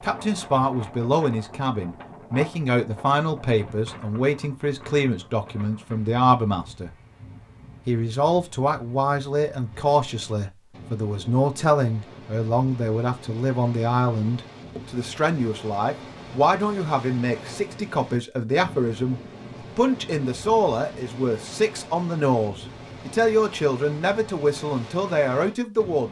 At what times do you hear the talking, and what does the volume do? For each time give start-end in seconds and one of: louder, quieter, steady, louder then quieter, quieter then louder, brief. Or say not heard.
0.0-7.0 steady
7.8-26.0 steady.